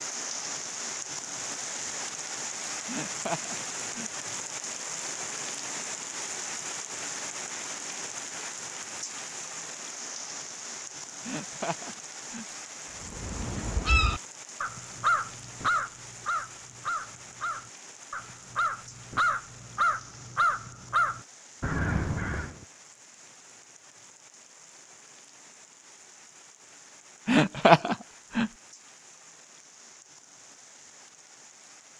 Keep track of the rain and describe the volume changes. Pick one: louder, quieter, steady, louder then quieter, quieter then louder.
quieter.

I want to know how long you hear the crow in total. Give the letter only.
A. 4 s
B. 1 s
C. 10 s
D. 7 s
C.